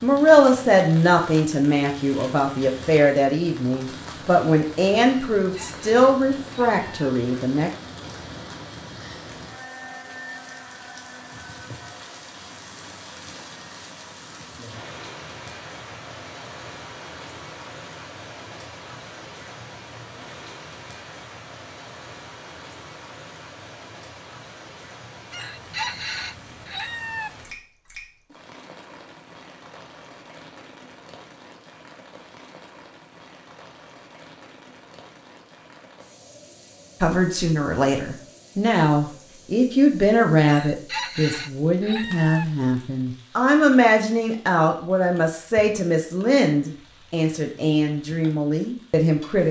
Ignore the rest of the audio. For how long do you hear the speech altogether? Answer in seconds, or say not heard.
20 s.